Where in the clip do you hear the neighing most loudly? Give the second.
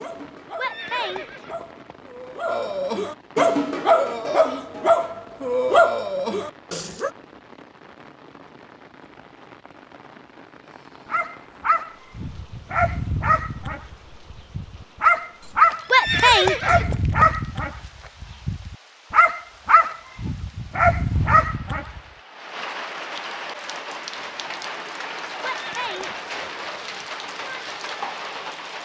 16 s.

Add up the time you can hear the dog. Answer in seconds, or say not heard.
18 s.